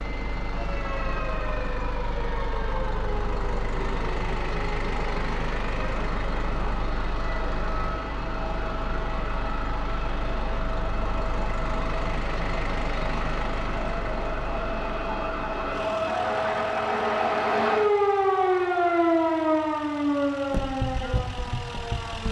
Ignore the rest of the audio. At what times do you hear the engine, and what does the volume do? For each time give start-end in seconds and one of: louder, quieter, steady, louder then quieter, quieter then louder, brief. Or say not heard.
0.0-22.2 quieter.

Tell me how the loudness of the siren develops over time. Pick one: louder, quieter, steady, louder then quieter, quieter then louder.
louder.